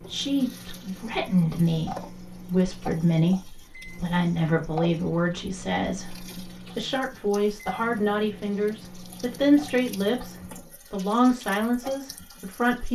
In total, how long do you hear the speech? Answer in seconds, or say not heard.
13 s.